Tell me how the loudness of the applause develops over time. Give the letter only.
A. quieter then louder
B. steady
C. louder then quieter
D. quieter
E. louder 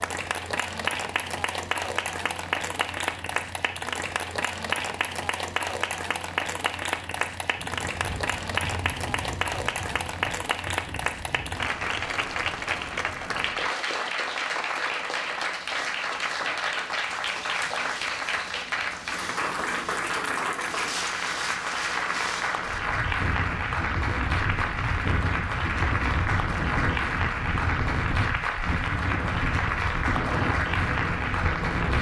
B.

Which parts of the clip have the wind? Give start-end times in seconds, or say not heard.
7.5-31.9.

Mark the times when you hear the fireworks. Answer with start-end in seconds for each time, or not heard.
not heard.